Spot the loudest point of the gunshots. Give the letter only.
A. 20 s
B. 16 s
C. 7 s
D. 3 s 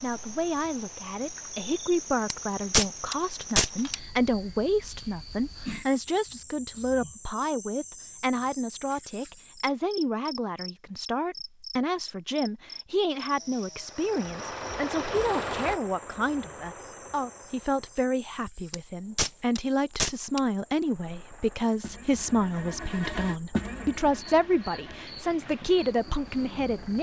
D.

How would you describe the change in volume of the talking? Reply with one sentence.
The volume of the talking stays about the same.